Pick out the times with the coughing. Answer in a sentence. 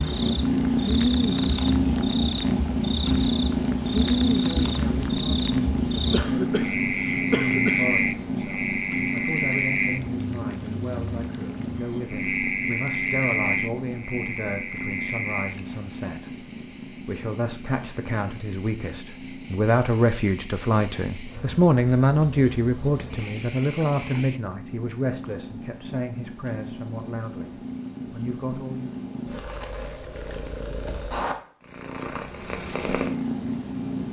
The coughing can be heard from 6.1 to 7.8 s.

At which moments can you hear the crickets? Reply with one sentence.
The crickets can be heard from 0.0 to 24.4 s.